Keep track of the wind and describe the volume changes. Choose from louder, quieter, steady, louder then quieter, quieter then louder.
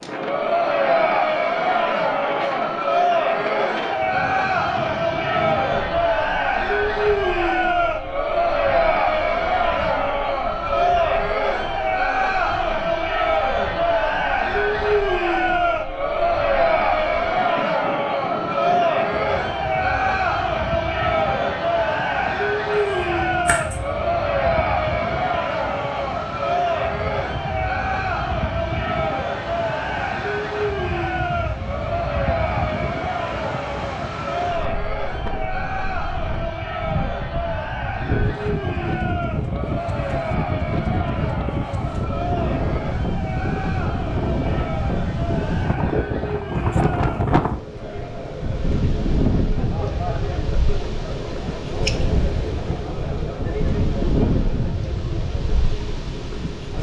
louder.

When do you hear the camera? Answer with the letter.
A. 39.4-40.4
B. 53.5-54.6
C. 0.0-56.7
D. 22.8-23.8
D.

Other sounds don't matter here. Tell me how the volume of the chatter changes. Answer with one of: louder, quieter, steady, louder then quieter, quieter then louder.
quieter.